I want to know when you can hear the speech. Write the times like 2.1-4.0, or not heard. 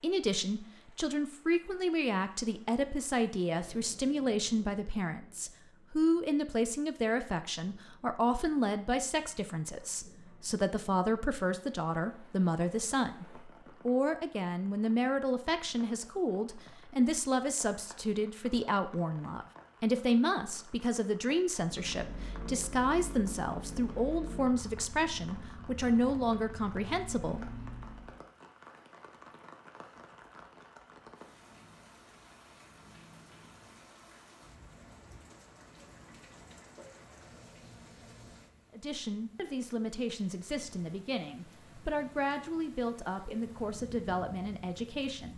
0.0-27.4, 38.7-45.3.